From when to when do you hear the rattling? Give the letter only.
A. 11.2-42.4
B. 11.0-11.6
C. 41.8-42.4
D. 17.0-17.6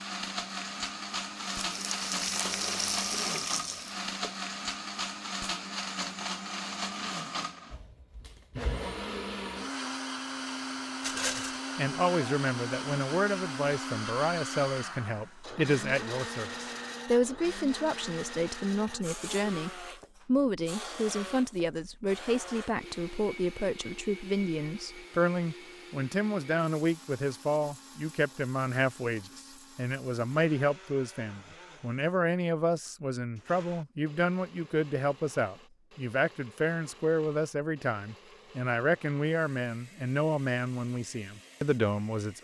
B.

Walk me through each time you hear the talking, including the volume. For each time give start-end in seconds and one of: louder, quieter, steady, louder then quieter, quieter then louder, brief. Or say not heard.
11.2-42.4 steady.